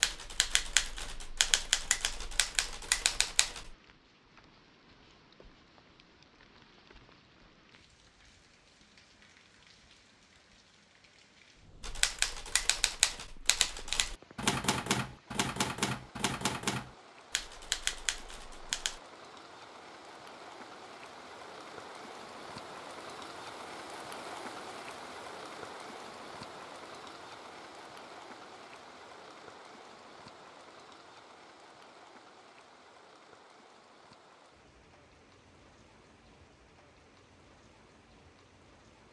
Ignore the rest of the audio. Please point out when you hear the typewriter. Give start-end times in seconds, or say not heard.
0.0-3.8, 11.8-19.0.